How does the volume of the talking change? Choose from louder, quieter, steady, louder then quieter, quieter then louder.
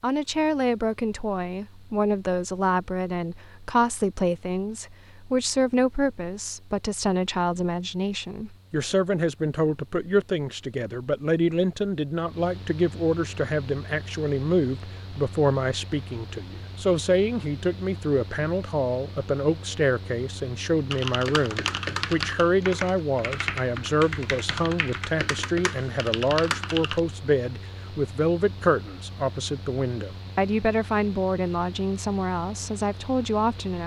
steady.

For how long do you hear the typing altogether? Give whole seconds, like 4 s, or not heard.
6 s.